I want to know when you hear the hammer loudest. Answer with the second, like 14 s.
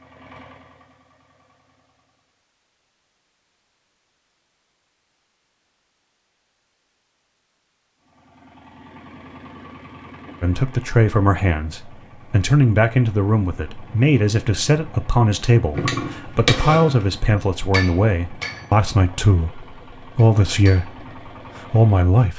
17 s.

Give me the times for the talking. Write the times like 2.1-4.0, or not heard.
10.4-22.3.